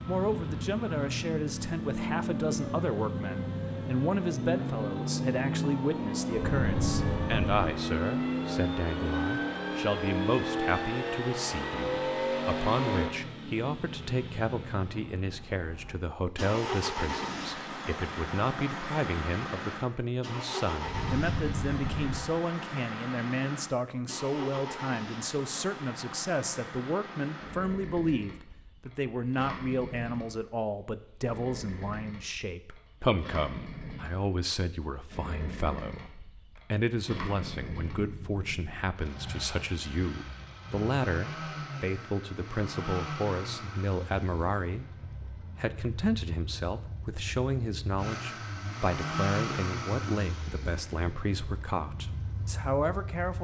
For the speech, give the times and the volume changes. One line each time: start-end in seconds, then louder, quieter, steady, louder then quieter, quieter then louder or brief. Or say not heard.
0.1-53.3 steady.